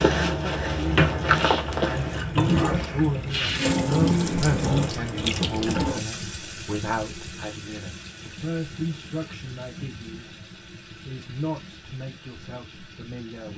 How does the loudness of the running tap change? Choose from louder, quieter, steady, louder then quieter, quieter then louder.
quieter.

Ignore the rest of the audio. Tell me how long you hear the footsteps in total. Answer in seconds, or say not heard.
2 s.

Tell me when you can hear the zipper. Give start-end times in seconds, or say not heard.
not heard.